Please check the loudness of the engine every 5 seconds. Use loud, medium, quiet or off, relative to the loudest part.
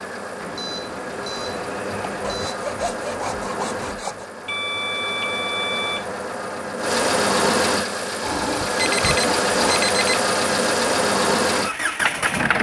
medium, loud, loud.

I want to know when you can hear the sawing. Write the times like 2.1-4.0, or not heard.
2.2-4.3, 8.2-9.8.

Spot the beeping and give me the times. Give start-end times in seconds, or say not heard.
0.4-2.6, 4.5-6.2, 8.6-10.2.